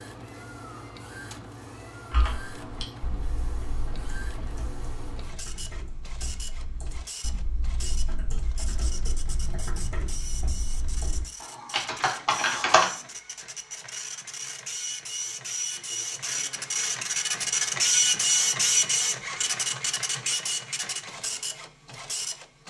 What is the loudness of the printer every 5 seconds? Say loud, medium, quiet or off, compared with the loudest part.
quiet, quiet, quiet, loud, medium.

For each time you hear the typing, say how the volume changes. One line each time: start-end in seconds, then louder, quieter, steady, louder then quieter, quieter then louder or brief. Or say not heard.
2.1-12.9 louder.